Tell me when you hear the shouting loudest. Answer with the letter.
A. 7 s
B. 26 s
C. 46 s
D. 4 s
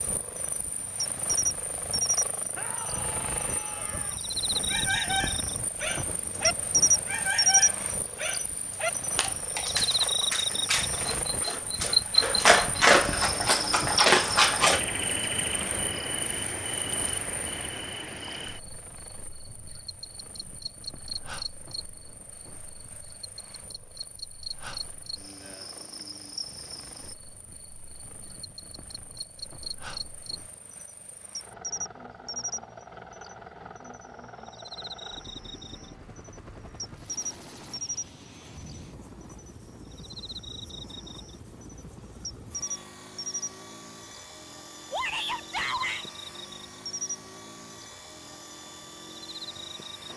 C.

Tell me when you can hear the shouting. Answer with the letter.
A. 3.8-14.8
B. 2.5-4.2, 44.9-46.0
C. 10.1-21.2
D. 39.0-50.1
B.